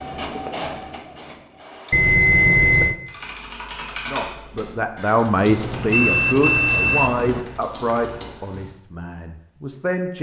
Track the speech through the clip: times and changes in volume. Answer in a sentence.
You can hear the speech from 4.0 to 10.1 s, getting quieter.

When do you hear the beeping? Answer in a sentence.
The beeping can be heard from 1.9 to 3.0 s and from 5.5 to 7.5 s.